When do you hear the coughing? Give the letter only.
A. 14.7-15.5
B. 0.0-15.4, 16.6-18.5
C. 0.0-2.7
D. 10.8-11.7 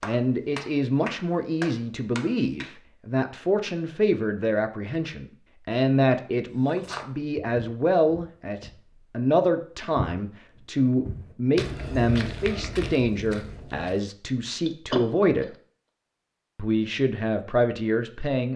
A.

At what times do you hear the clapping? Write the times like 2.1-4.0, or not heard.
0.0-2.7.